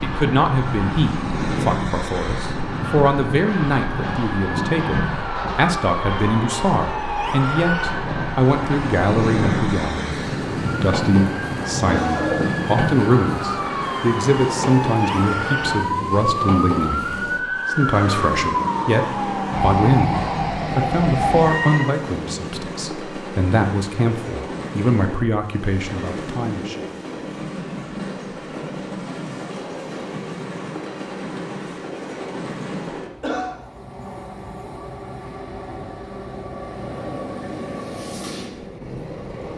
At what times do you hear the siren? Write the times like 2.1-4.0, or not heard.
0.0-21.9.